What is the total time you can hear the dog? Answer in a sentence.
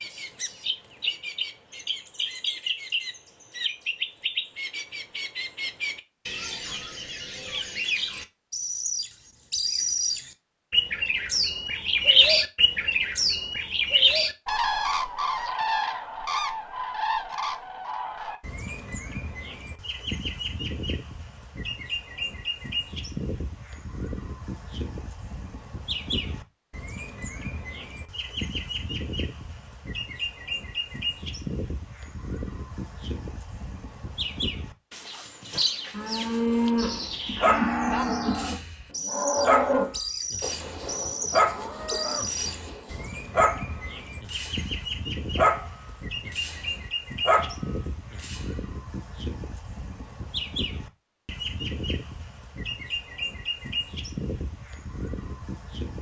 The dog can be heard for 11 seconds in total.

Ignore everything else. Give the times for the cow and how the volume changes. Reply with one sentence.
The cow can be heard from 35.5 to 43.2 s, getting quieter.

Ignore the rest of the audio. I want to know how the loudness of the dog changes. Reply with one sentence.
The volume of the dog stays about the same.